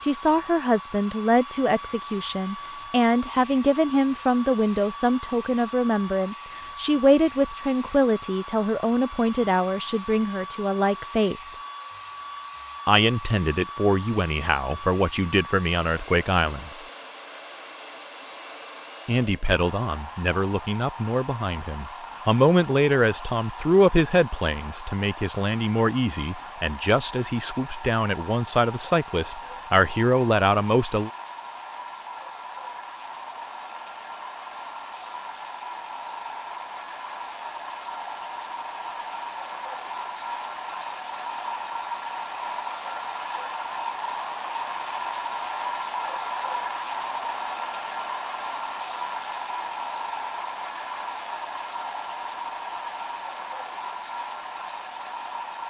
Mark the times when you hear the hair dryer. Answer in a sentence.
You can hear the hair dryer from 0.0 to 55.6 s.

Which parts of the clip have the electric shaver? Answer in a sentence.
You can't hear the electric shaver here.